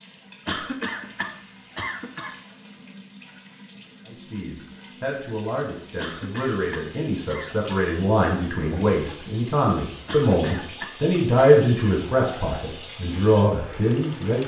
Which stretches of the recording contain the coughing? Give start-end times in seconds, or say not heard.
0.5-2.4, 6.0-7.8, 10.1-11.9.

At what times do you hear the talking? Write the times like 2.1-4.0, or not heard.
4.0-14.4.